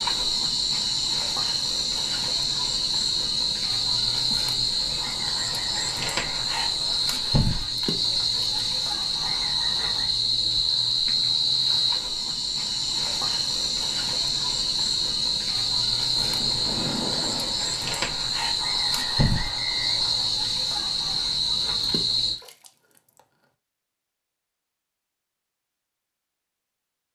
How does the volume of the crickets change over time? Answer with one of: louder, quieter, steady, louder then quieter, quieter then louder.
steady.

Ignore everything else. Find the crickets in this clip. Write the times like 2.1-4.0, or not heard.
0.0-22.4.